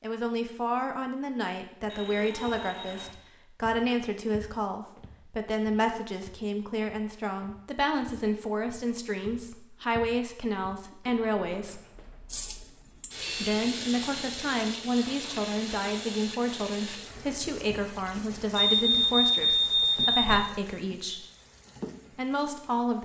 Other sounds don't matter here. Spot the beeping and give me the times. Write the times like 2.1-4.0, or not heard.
1.9-3.1, 11.9-13.5, 18.6-20.4.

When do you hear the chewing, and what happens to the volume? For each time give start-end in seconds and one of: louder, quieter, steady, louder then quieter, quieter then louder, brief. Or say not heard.
not heard.